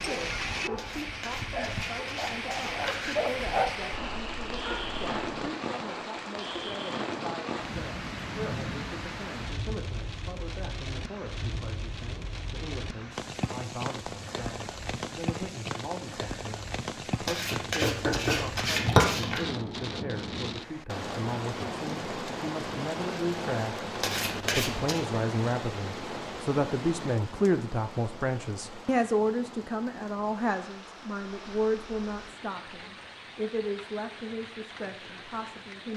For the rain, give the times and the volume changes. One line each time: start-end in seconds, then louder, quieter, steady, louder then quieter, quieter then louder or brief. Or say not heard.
0.0-35.9 quieter.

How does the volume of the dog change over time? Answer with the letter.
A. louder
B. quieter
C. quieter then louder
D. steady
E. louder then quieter
E.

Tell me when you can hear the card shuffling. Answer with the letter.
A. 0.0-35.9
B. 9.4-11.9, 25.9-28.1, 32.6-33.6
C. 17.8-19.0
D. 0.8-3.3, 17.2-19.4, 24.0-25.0
D.